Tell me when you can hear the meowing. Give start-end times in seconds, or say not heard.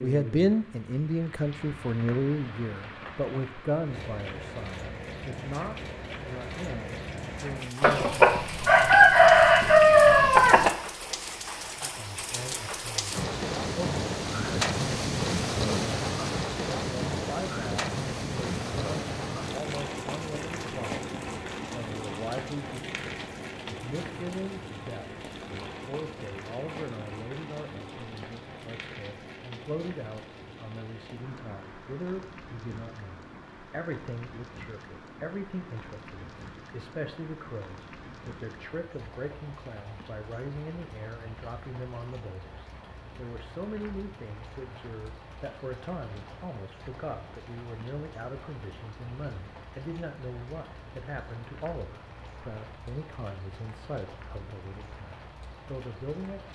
not heard.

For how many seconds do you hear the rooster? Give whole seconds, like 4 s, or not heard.
3 s.